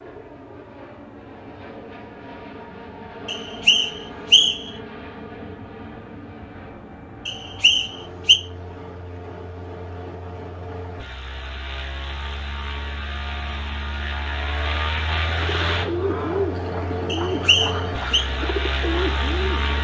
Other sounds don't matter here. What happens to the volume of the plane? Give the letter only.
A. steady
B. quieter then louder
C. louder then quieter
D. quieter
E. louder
E.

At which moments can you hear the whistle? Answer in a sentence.
You can hear the whistle from 3.2 to 4.7 s, from 7.2 to 8.4 s and from 17.1 to 18.2 s.